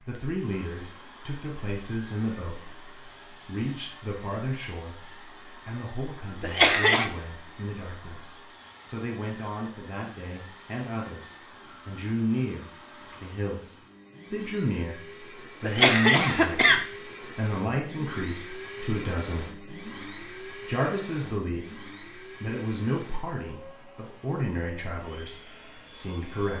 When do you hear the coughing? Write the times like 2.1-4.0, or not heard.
6.4-7.0, 15.6-16.8.